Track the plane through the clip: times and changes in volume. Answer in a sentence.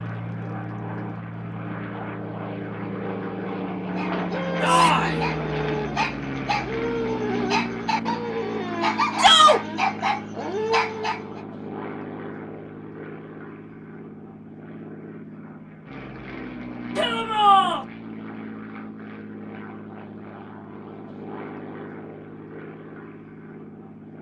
The plane can be heard from 0.0 to 24.1 s, getting quieter.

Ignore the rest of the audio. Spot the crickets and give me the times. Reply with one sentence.
The crickets can't be heard in this clip.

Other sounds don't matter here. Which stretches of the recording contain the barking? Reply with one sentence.
The barking can be heard from 4.0 to 11.4 s.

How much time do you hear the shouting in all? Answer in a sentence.
The shouting can be heard for 2 seconds in total.